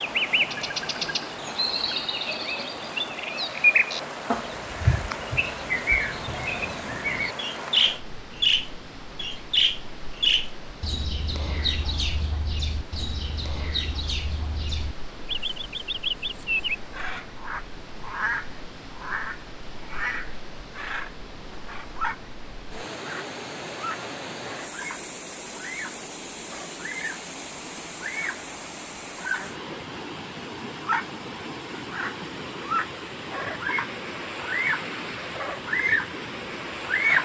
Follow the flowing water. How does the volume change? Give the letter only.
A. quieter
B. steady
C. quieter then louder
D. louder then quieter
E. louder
C.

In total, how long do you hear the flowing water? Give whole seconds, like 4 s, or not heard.
37 s.